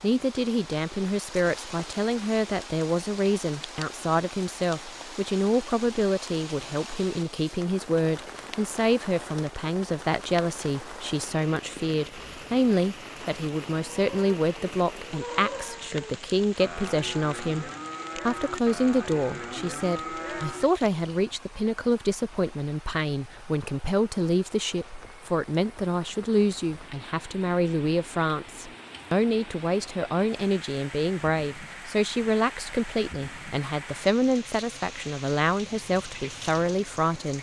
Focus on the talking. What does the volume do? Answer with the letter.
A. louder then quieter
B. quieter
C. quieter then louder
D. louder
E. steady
E.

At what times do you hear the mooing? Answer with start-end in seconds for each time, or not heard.
13.9-20.6.